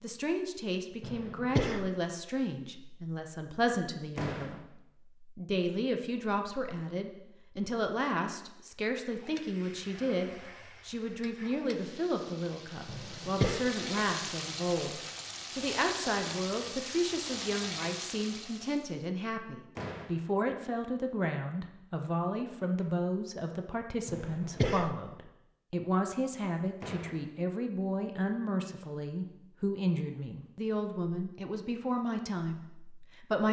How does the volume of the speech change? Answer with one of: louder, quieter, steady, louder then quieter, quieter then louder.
steady.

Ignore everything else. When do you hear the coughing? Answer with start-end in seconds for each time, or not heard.
1.0-1.9, 12.8-13.6, 24.1-24.9.